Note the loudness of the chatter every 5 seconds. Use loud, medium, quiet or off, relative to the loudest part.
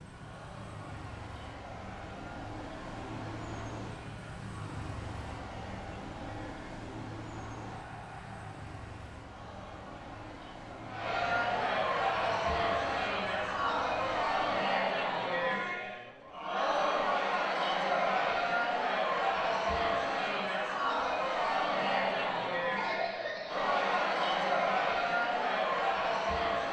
quiet, quiet, loud, loud, loud, loud.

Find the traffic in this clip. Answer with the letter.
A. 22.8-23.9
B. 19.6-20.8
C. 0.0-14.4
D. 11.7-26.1
C.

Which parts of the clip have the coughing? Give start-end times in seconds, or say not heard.
22.8-23.9.